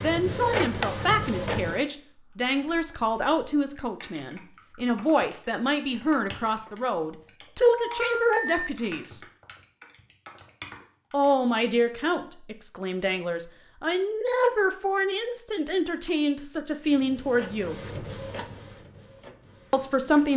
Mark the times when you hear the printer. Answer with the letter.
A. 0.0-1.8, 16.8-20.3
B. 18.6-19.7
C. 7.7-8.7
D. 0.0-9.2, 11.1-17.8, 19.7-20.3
A.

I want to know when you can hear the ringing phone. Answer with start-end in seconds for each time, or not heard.
7.7-8.7.